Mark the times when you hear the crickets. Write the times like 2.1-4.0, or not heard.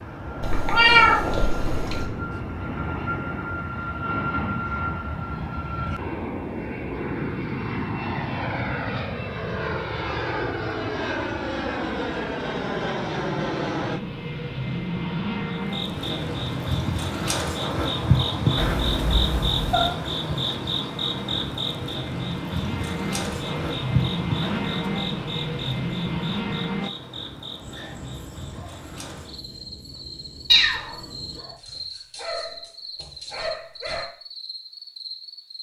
15.5-35.5.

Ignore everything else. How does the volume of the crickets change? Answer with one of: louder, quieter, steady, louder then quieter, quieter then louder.
quieter.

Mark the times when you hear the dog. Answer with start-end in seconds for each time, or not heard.
27.6-34.0.